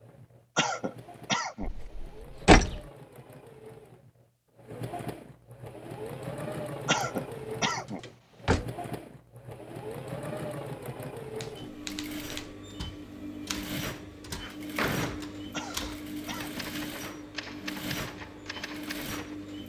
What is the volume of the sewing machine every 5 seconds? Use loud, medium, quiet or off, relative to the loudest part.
medium, loud, loud, loud.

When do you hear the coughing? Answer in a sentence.
You can hear the coughing from 0.6 to 1.7 s, from 6.8 to 8.0 s and from 15.5 to 16.6 s.